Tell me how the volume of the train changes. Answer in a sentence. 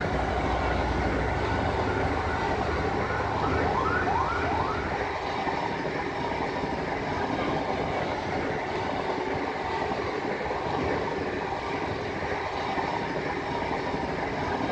The loudness of the train stays about the same.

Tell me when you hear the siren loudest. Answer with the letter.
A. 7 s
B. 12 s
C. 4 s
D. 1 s
C.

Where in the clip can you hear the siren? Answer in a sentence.
The siren can be heard from 0.0 to 5.0 s.